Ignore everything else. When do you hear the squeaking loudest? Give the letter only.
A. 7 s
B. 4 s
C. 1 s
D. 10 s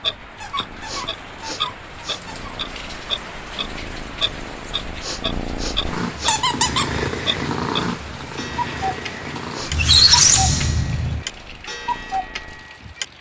D.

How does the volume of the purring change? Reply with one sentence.
The volume of the purring goes up, then down.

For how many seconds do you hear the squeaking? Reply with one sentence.
The squeaking can be heard for 4 seconds in total.